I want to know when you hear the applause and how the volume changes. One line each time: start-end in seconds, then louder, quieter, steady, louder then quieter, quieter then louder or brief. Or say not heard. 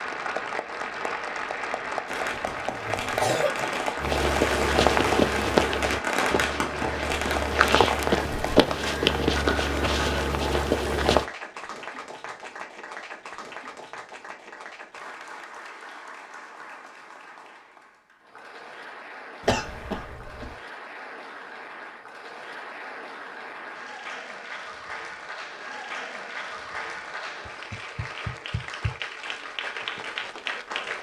0.0-30.9 quieter then louder.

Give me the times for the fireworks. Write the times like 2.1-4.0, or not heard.
2.0-8.6.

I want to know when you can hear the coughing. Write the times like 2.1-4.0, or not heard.
2.1-3.8, 19.4-20.5.